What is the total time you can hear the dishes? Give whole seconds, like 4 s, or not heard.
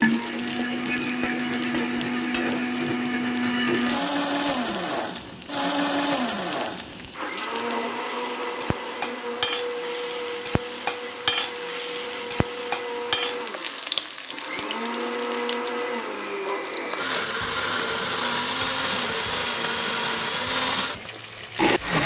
not heard.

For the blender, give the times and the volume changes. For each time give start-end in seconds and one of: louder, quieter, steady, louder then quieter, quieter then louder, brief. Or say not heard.
0.0-22.0 quieter then louder.